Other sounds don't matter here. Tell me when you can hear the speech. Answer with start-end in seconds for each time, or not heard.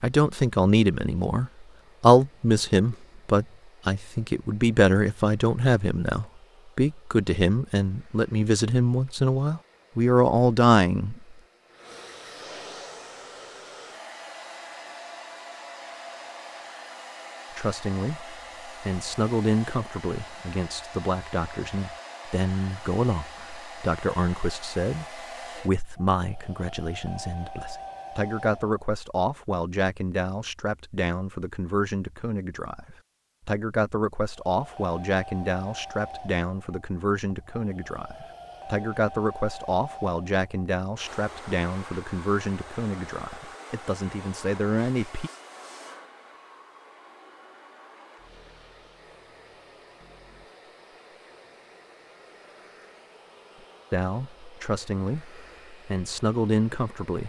0.0-11.3, 17.6-45.3, 53.9-57.2.